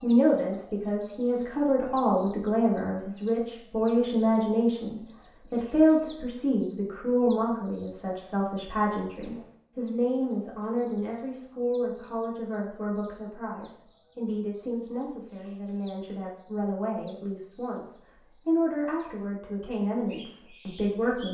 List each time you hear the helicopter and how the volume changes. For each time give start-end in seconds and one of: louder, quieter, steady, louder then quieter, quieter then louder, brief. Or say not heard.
not heard.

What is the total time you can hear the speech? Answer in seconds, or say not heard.
21 s.